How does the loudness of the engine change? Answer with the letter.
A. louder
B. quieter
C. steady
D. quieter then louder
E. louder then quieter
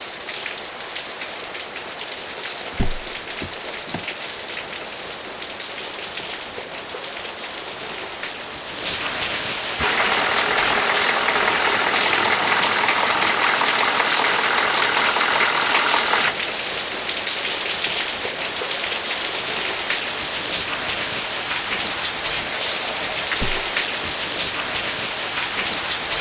C.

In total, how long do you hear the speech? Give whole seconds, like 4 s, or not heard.
not heard.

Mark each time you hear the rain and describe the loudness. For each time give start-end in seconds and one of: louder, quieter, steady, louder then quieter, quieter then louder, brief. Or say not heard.
0.0-26.1 louder.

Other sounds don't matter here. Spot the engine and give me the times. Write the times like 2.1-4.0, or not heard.
9.8-16.4.